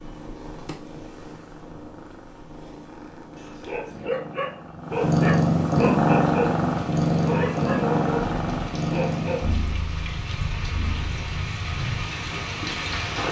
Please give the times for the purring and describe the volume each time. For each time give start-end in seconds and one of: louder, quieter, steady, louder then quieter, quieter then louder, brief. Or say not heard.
0.0-12.9 louder then quieter.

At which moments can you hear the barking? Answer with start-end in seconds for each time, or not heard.
3.6-9.4.